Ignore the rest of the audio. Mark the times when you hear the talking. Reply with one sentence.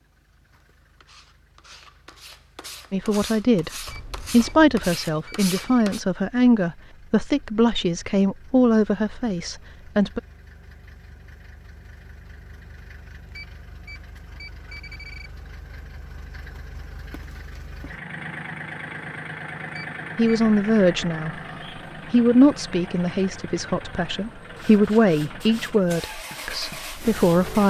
The talking can be heard from 2.9 to 10.2 s, from 20.1 to 21.4 s and from 22.1 to 27.6 s.